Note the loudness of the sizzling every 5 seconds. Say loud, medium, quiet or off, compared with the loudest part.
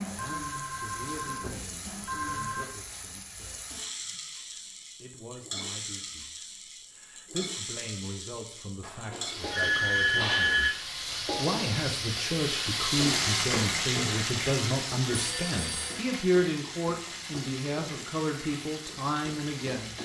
medium, medium, loud, medium.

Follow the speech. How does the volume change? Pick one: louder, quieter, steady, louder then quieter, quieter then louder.
louder.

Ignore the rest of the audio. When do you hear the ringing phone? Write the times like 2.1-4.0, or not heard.
0.1-2.6, 8.8-10.7, 15.1-16.0.